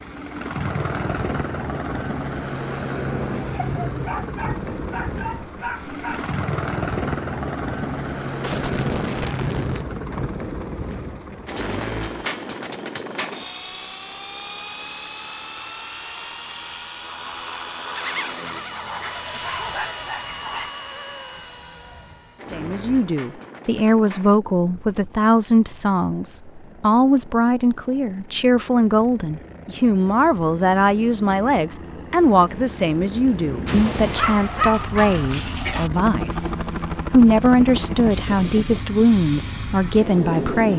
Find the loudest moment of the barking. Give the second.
35 s.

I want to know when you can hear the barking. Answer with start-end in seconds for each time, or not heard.
3.6-6.3, 18.7-20.8, 34.1-35.9.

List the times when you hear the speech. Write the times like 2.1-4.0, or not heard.
22.5-40.7.